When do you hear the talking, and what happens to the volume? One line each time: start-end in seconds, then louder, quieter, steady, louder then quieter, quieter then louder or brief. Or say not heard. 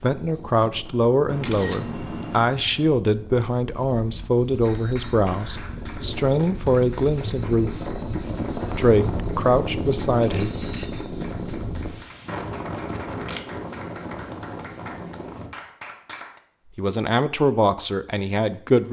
0.0-10.6 steady
16.8-18.8 brief.